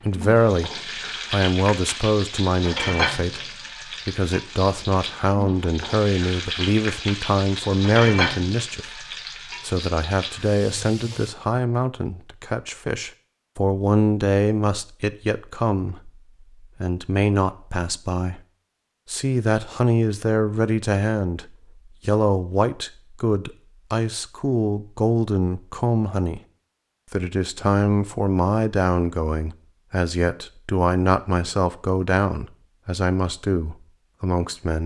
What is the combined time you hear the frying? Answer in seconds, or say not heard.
11 s.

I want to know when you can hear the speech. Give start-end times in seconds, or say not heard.
0.0-18.4, 19.1-26.4, 27.1-34.8.